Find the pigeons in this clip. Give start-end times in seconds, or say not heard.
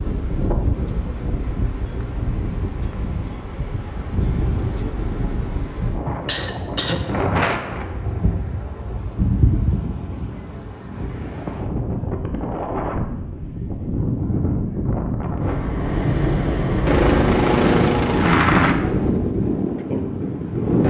not heard.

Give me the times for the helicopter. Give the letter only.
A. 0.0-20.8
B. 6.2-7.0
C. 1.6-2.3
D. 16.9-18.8
D.